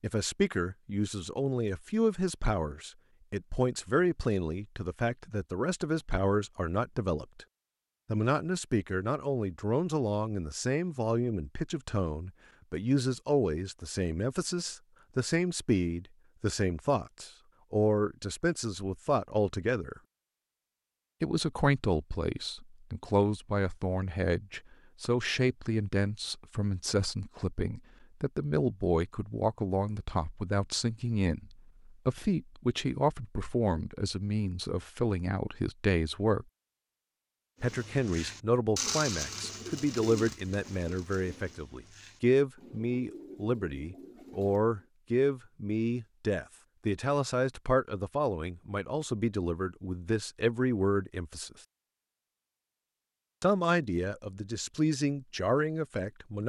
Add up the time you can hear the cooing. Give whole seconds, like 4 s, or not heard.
7 s.